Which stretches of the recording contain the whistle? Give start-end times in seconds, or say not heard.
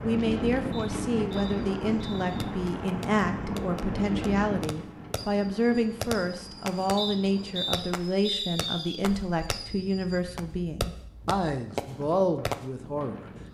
0.7-2.4, 7.0-9.0.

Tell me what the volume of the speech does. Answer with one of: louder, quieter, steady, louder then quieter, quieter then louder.
steady.